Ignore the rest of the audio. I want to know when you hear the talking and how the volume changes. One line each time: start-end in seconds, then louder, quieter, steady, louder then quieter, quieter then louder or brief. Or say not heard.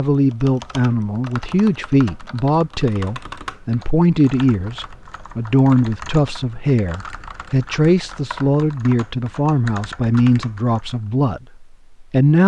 0.0-12.4 steady.